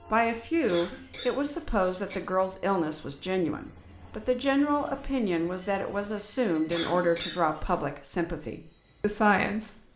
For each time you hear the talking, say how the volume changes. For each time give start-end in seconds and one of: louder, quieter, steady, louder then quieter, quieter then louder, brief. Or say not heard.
0.1-9.9 steady.